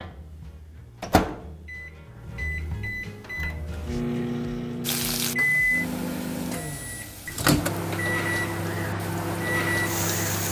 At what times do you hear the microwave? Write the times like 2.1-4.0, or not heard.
0.0-10.4.